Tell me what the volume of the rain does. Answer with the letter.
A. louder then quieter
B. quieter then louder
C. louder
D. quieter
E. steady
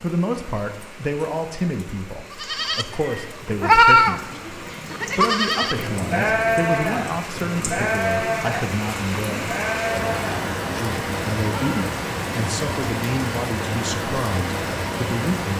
C.